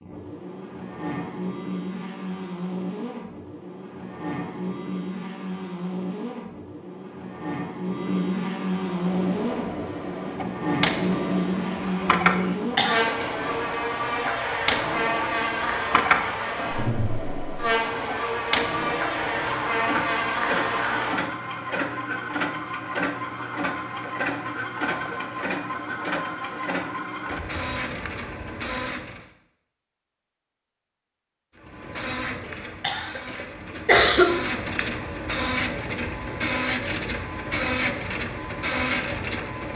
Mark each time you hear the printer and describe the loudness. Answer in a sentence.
The printer can be heard from 8.8 to 29.2 s, at a steady volume; and from 31.6 to 39.7 s, getting louder.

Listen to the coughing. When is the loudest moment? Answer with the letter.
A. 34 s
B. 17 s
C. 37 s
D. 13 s
A.